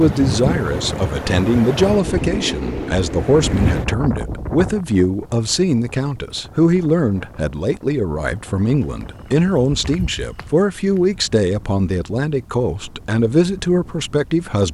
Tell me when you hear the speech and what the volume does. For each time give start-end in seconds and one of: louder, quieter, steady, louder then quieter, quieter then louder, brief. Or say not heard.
0.0-14.6 steady.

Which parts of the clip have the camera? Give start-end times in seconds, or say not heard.
not heard.